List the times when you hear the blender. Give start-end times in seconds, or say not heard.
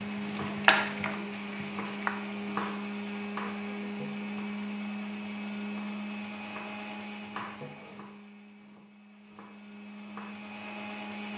0.0-11.3.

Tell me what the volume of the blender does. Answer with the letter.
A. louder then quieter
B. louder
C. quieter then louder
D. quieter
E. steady
D.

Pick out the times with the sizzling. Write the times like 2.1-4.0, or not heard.
0.0-2.1.